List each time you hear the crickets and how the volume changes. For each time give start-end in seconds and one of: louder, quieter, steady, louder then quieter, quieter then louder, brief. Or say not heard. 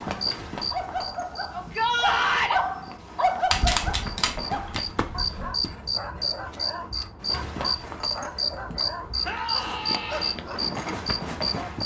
0.0-11.8 louder.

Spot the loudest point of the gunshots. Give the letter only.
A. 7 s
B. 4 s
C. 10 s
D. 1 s
B.